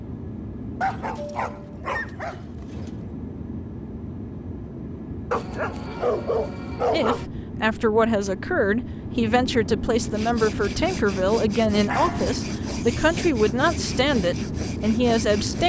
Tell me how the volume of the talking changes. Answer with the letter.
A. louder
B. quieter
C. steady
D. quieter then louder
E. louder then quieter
C.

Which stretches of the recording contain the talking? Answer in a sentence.
The talking can be heard from 6.9 to 15.6 s.